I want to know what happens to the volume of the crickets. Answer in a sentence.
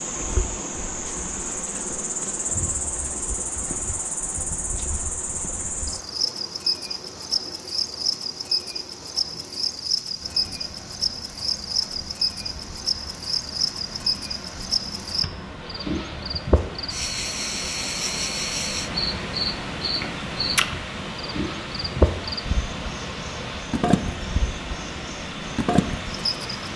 The loudness of the crickets stays about the same.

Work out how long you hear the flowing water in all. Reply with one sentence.
You can hear the flowing water for 27 seconds altogether.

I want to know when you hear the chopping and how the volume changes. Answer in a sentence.
You can't hear the chopping here.